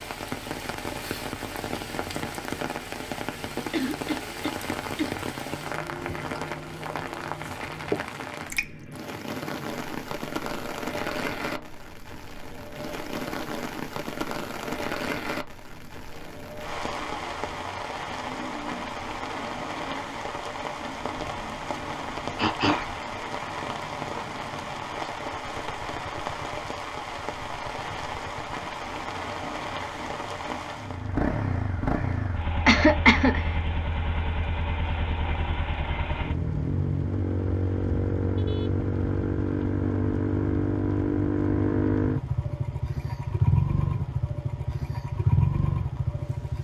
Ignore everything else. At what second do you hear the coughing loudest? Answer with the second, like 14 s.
33 s.